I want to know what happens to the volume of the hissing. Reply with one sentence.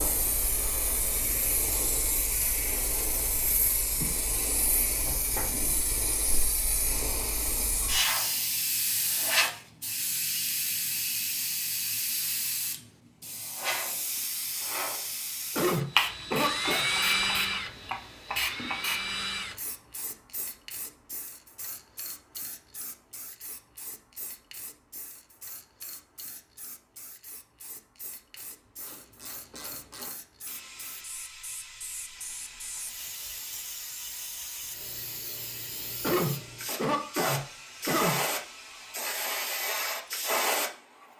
The volume of the hissing goes down, then up.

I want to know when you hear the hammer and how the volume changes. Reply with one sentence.
The hammer can't be heard in this clip.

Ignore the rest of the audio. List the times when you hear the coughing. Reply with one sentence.
The coughing can be heard from 15.6 to 16.9 s and from 36.0 to 38.2 s.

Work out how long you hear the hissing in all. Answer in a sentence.
The hissing can be heard for 41 seconds in total.